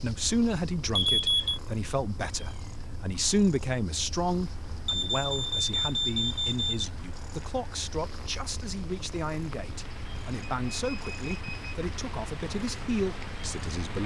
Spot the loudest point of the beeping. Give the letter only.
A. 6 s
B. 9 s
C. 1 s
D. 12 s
C.